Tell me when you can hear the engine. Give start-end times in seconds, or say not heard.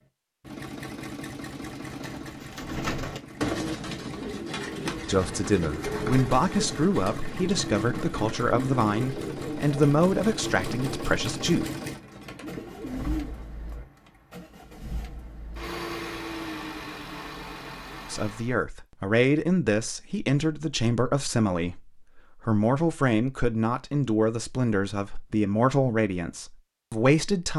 0.0-18.6.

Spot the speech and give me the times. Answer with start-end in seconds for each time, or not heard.
5.0-11.7, 18.1-27.5.